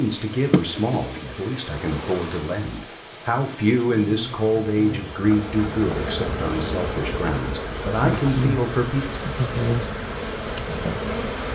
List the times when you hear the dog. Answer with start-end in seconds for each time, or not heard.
not heard.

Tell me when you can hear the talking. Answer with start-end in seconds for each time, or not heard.
0.0-9.1.